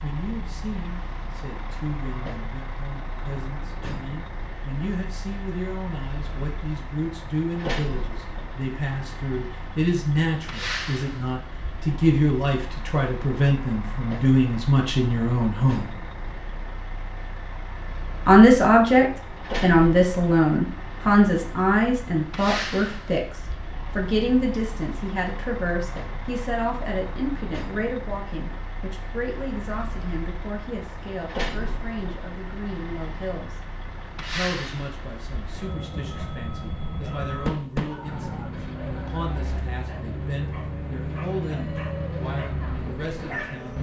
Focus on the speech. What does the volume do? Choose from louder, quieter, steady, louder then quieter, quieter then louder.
louder then quieter.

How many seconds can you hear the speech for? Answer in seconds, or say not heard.
41 s.